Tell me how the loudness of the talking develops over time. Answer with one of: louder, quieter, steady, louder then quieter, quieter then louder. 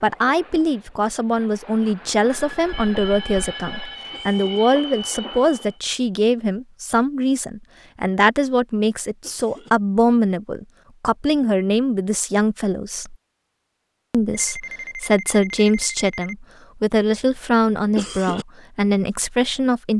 steady.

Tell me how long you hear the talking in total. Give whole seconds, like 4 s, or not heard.
19 s.